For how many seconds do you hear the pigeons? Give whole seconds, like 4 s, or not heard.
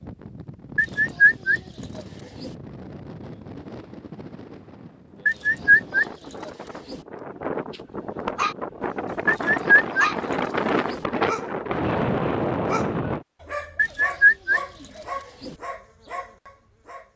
7 s.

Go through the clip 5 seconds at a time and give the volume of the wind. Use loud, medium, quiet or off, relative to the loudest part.
quiet, medium, loud, off.